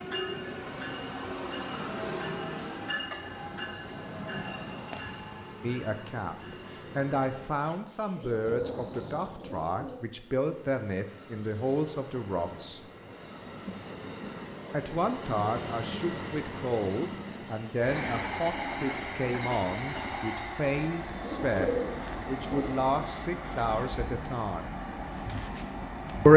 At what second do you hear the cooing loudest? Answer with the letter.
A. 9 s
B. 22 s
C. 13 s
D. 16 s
B.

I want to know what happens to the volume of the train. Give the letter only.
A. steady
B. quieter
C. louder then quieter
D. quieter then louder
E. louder
D.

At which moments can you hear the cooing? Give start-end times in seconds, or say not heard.
8.1-10.0, 21.1-22.9.